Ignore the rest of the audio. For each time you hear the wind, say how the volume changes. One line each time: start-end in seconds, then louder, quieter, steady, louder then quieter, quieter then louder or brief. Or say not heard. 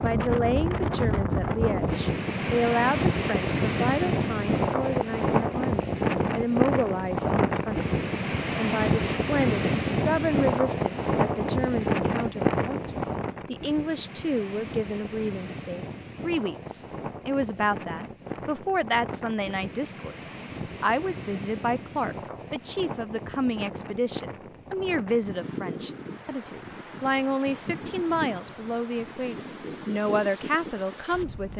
0.0-31.5 quieter.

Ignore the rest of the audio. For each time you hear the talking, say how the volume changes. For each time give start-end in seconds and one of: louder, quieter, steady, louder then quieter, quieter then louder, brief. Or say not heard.
0.0-31.5 steady.